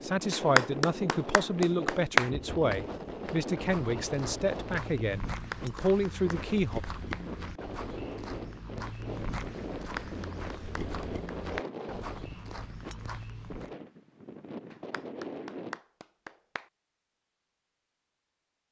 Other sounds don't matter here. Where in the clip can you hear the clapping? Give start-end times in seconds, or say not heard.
0.3-2.3, 5.3-7.2, 9.8-11.7, 14.7-16.6.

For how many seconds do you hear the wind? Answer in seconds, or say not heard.
16 s.